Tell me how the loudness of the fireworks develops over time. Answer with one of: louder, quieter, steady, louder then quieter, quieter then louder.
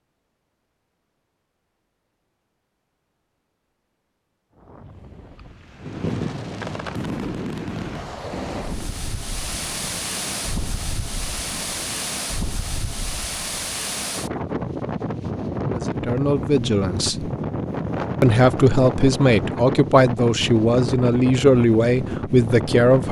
quieter.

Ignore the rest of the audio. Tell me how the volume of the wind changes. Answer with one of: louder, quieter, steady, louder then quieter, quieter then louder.
louder.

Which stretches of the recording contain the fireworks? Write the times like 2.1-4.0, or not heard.
5.8-12.2.